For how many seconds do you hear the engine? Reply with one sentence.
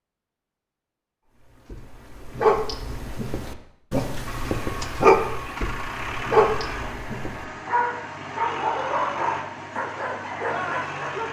The engine can be heard for 7 seconds in total.